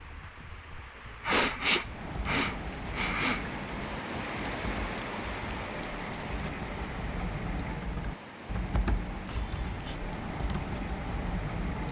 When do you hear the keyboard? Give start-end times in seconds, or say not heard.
1.8-11.8.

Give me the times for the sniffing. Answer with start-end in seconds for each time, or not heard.
1.2-3.5, 9.2-10.0.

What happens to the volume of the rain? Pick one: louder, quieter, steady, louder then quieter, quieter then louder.
louder then quieter.